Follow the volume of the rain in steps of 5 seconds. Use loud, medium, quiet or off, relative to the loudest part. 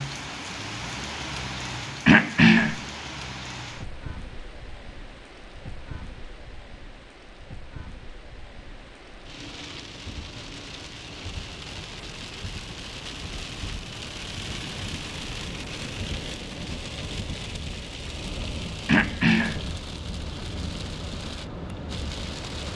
loud, medium, loud, loud, loud.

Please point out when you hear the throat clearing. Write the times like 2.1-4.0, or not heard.
2.0-2.8, 18.9-19.6.